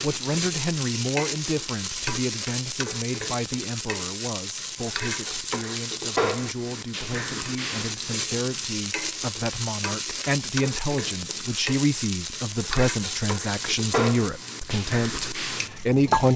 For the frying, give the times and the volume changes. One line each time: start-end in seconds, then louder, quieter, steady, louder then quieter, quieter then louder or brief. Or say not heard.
0.0-16.3 steady.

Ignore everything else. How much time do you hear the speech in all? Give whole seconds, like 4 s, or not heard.
16 s.